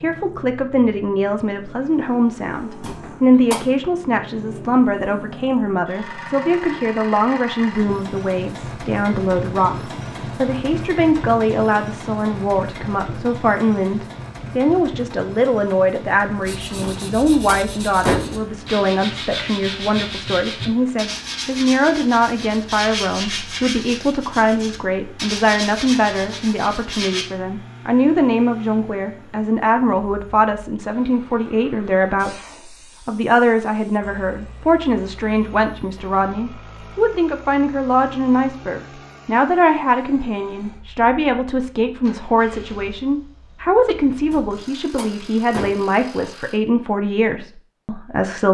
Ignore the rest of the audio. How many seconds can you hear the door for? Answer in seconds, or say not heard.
4 s.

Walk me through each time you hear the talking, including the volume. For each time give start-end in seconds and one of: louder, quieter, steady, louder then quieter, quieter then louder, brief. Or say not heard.
0.0-48.4 steady.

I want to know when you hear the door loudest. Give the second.
18 s.